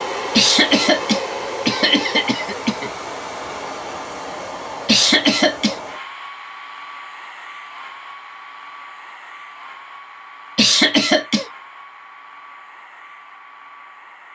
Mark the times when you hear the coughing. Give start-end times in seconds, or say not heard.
0.3-2.9, 4.8-5.8, 10.6-11.4.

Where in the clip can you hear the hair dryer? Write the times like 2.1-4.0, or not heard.
0.0-14.2.